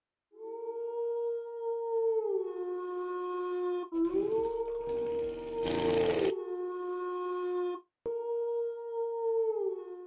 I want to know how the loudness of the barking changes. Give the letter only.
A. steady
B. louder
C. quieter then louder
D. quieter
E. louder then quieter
A.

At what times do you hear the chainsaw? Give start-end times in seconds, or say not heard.
3.9-6.3.